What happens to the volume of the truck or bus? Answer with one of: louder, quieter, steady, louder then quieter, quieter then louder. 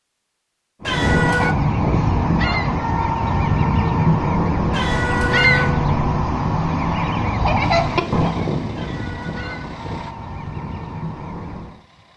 quieter.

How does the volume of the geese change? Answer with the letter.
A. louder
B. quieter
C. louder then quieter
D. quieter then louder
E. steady
B.